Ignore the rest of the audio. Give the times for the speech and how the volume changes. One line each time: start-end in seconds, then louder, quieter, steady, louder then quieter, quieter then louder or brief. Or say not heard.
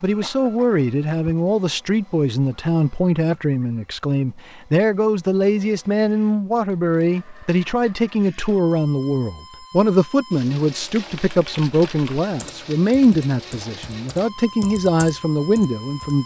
0.0-16.2 steady.